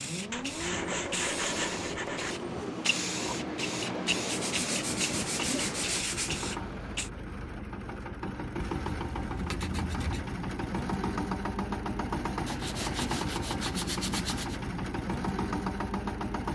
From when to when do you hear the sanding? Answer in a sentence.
You can hear the sanding from 0.3 to 2.4 s, from 4.2 to 6.3 s, from 8.8 to 10.2 s and from 12.4 to 14.6 s.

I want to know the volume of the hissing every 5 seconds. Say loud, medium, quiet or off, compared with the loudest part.
loud, loud, off, off.